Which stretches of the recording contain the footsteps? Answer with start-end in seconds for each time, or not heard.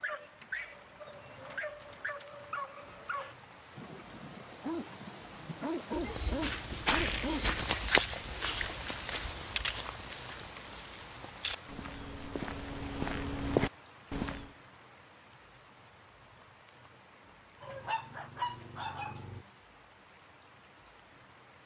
6.0-14.4.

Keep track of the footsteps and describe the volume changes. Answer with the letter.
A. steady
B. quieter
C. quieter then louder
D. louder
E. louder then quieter
C.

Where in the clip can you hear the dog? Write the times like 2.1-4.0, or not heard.
0.0-7.6, 17.6-19.4.